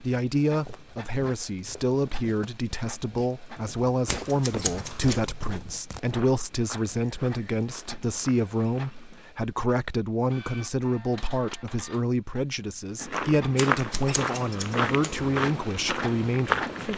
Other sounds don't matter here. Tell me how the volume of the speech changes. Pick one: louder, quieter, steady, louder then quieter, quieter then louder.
steady.